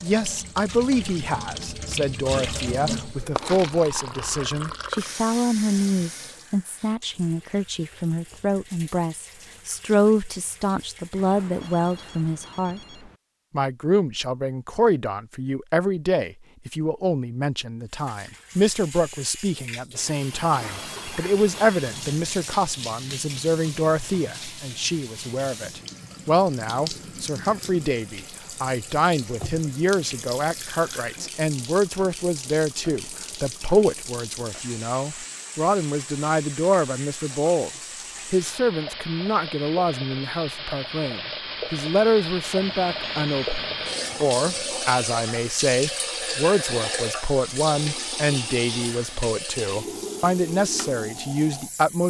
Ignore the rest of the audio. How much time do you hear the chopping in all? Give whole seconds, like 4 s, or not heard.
not heard.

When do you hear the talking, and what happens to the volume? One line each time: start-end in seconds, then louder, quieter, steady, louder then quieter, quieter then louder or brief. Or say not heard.
0.0-12.8 steady
13.5-52.0 steady.